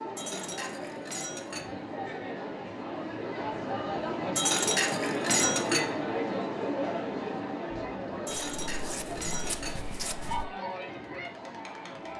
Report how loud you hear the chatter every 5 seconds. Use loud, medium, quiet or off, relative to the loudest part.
loud, loud, medium.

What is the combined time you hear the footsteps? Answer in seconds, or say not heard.
2 s.